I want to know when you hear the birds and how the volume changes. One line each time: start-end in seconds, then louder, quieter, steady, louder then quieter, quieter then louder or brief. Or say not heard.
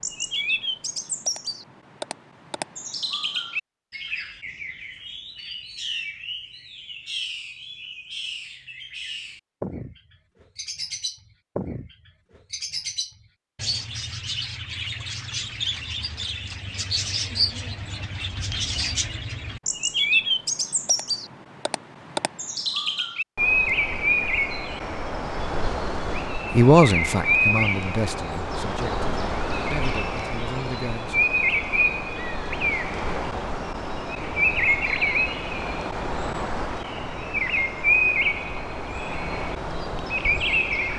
0.0-40.9 louder.